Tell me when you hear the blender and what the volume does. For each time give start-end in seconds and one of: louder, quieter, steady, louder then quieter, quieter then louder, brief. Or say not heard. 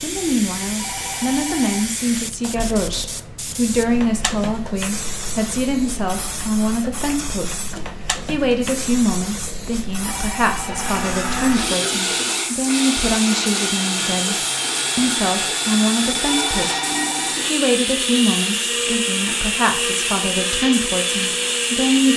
10.5-22.1 steady.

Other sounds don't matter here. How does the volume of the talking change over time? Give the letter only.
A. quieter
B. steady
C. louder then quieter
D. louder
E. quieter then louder
B.